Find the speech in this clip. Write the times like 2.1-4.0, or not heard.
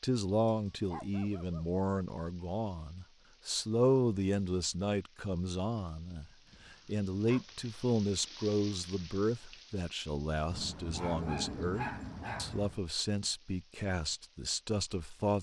0.0-15.3.